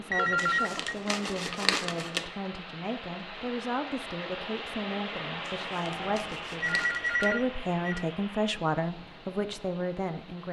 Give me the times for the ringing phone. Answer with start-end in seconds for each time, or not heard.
0.1-0.9, 5.8-8.1.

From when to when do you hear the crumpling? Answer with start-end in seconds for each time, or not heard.
0.3-2.2, 5.5-7.3.